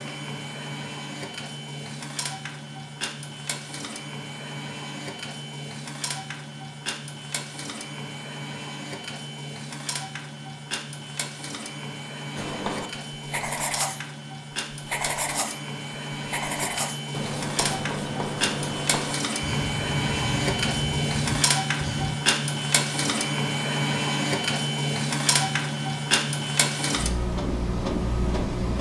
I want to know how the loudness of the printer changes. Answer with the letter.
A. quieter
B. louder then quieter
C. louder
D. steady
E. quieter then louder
C.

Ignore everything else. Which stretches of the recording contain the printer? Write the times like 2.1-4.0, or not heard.
0.0-28.7.